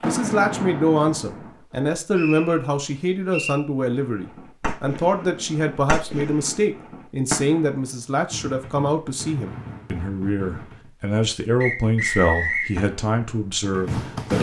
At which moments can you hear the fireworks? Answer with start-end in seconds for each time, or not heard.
0.0-1.6, 4.0-10.9, 12.8-14.3.